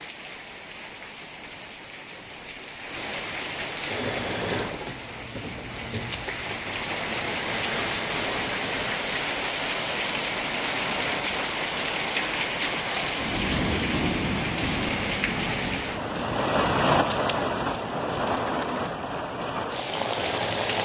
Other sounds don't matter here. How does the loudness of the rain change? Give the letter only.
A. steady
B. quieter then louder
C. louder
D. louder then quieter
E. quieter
C.